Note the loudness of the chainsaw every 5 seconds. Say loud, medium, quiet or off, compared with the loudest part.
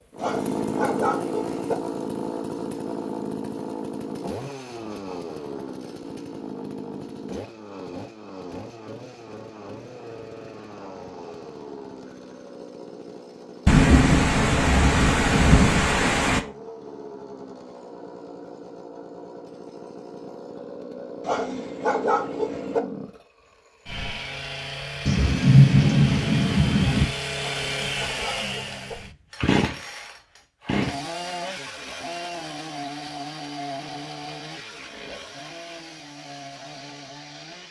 loud, medium, medium, medium, medium, loud, loud, medium.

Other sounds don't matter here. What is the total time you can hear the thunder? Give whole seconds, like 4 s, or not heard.
5 s.